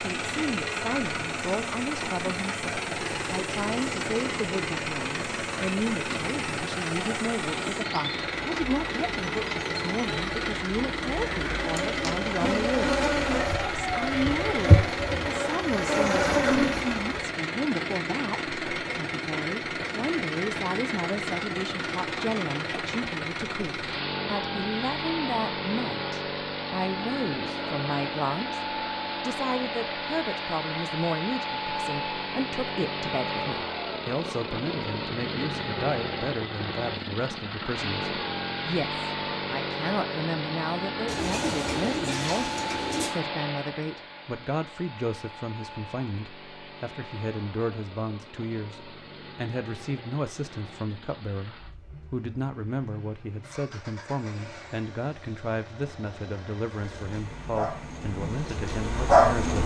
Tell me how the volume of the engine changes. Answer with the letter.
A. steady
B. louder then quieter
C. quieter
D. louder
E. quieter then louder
C.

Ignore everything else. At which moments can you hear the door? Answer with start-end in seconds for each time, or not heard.
not heard.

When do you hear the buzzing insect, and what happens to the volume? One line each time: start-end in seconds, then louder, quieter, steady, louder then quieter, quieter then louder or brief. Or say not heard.
0.0-17.3 louder
56.7-59.6 brief.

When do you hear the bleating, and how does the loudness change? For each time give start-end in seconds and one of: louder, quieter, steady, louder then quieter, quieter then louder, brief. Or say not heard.
not heard.